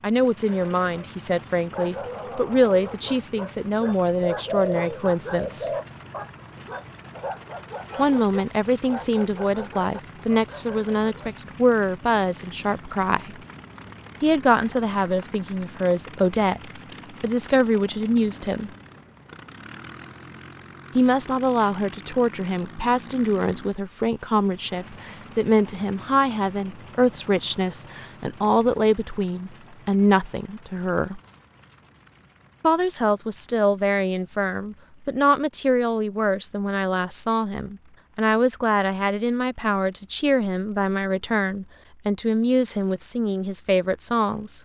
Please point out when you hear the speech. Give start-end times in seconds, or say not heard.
0.0-5.7, 8.0-13.3, 14.2-18.7, 20.9-31.2, 32.6-44.6.